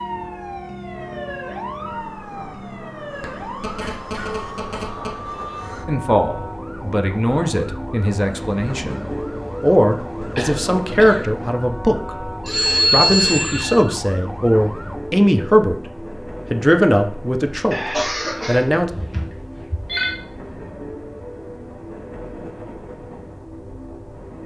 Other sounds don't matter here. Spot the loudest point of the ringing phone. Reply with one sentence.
The volume of the ringing phone peaks at 13 seconds.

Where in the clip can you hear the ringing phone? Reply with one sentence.
The ringing phone can be heard from 3.2 to 5.1 s, from 12.4 to 13.8 s and from 18.9 to 20.1 s.